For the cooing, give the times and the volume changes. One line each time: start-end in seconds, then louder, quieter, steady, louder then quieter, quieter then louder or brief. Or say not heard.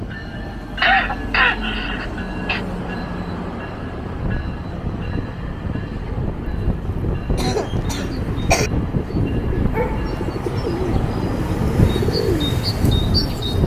5.9-13.6 louder.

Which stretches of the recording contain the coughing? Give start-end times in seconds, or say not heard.
0.8-2.6, 7.3-8.7.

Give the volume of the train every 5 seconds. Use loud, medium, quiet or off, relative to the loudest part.
medium, loud, loud.